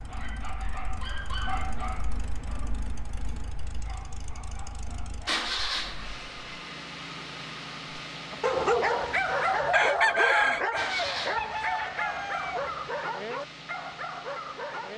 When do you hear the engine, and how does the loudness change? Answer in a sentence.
You can hear the engine from 0.0 to 14.9 s, getting louder then quieter.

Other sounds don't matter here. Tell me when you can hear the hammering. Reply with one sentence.
You can't hear the hammering here.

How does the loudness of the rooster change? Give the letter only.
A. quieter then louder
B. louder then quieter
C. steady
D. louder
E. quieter
B.